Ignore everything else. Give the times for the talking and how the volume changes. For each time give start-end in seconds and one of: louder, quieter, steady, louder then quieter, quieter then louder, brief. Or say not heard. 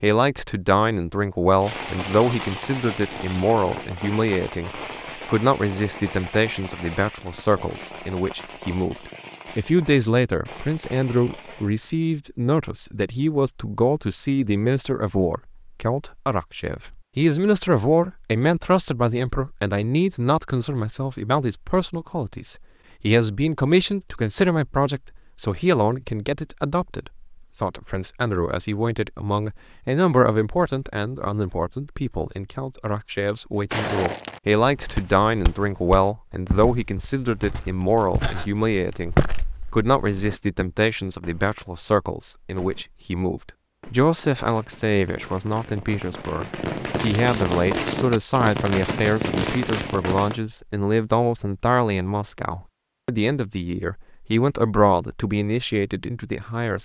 0.0-56.8 steady.